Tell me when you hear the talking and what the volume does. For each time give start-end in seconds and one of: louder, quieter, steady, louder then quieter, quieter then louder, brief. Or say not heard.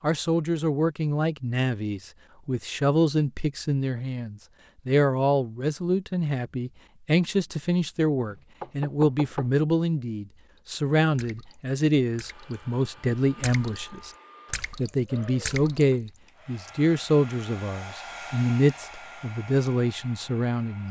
0.0-14.1 steady
14.8-20.8 quieter then louder.